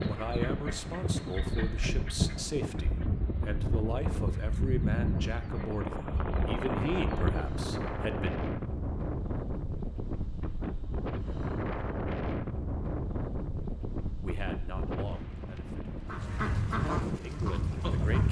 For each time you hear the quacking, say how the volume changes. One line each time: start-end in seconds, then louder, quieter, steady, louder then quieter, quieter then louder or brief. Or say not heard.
0.0-7.5 louder then quieter
16.1-18.2 brief.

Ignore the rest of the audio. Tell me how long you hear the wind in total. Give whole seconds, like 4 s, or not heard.
18 s.